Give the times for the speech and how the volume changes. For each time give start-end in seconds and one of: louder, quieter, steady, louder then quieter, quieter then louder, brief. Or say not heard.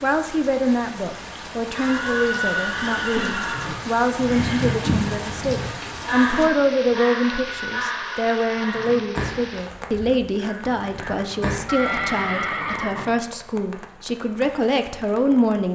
0.0-15.7 steady.